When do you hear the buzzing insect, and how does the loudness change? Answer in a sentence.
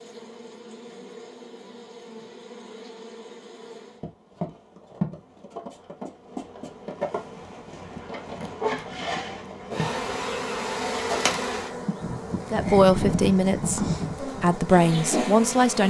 The buzzing insect can be heard from 0.0 to 15.8 s, getting louder.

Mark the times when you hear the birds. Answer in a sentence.
You can't hear the birds here.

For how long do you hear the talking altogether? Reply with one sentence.
You can hear the talking for 3 seconds altogether.